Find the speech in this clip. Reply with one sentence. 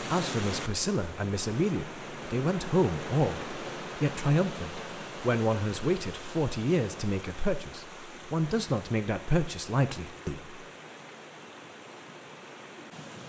You can hear the speech from 0.0 to 10.6 s.